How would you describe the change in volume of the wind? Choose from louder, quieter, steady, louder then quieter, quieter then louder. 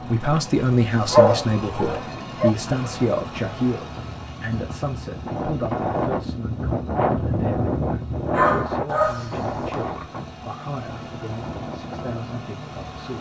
louder then quieter.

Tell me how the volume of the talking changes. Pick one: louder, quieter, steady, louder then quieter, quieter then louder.
quieter.